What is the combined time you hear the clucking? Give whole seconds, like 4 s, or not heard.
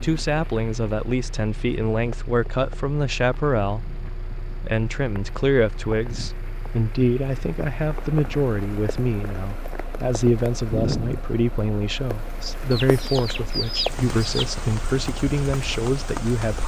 2 s.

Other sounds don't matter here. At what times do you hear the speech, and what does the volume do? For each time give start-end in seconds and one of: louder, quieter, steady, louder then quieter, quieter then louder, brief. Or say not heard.
0.0-16.6 steady.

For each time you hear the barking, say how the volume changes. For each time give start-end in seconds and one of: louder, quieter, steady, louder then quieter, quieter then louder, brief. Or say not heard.
not heard.